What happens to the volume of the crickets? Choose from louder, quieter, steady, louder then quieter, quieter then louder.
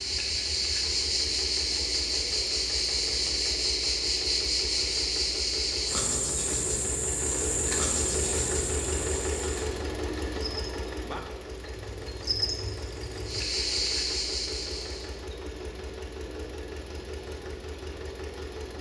quieter then louder.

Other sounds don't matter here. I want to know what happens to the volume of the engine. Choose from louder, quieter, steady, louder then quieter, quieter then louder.
louder then quieter.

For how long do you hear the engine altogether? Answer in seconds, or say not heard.
19 s.